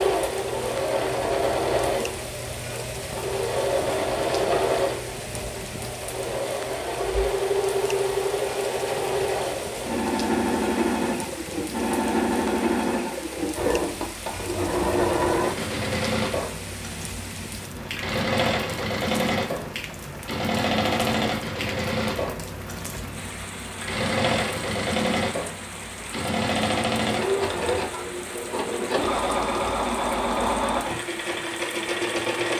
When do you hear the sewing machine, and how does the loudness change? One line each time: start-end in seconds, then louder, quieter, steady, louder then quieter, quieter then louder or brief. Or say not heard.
0.0-32.5 steady.